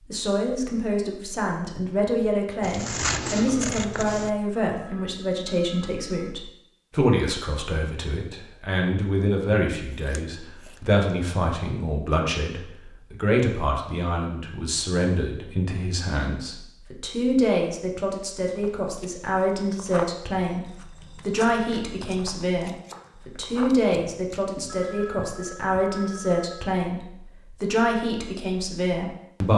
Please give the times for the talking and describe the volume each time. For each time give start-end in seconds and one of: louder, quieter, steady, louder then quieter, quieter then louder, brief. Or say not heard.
0.1-29.5 steady.